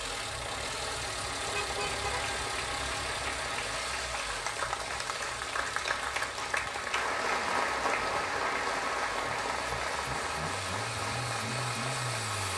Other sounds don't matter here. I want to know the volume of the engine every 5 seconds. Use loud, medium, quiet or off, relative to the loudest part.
loud, medium, loud.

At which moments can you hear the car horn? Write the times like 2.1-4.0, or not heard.
1.4-2.5.